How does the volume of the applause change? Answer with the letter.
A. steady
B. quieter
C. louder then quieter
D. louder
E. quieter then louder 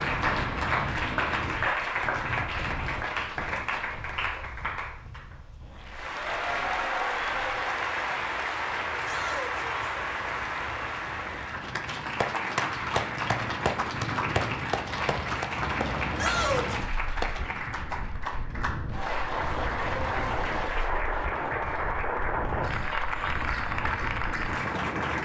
A.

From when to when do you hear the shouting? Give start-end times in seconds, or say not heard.
9.0-9.9, 16.1-16.8.